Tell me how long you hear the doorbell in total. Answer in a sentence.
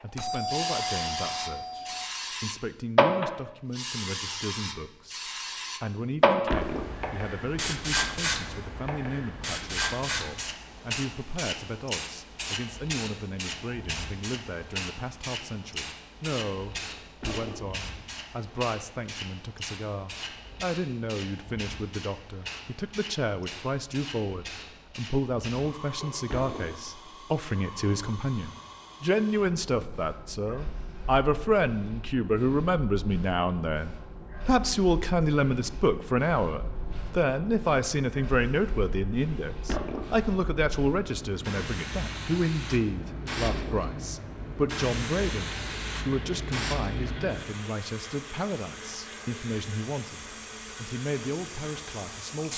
The doorbell can be heard for 2 seconds in total.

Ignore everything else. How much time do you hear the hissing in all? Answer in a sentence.
You can hear the hissing for 52 seconds altogether.